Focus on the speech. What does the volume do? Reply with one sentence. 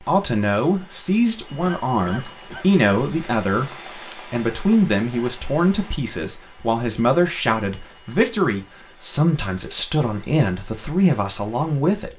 The loudness of the speech stays about the same.